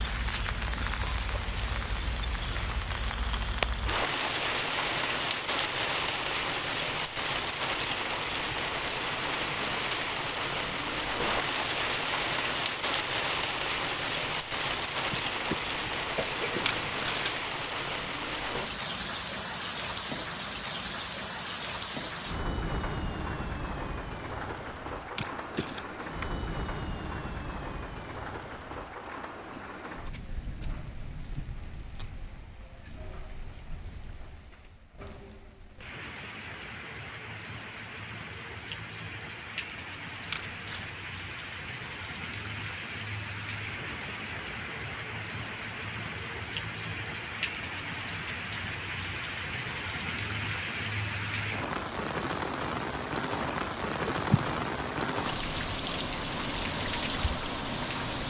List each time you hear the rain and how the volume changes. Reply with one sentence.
The rain can be heard from 0.0 to 58.2 s, getting quieter then louder.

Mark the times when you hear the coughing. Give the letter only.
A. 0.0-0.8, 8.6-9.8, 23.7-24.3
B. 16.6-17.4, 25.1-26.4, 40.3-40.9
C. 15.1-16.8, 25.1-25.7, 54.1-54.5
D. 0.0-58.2
C.